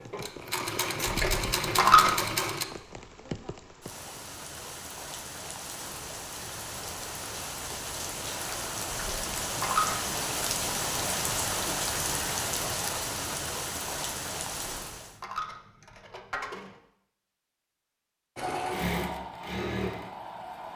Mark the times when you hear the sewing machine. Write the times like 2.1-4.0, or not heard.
0.0-2.6, 18.4-20.7.